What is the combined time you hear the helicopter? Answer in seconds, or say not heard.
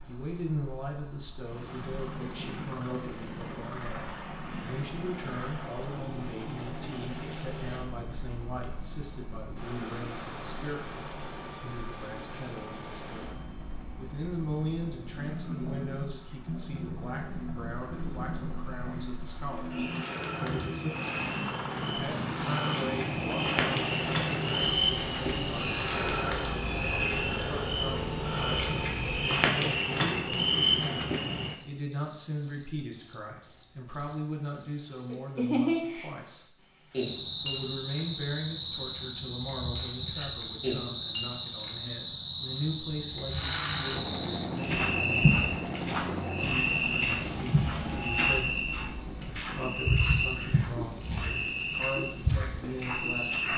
38 s.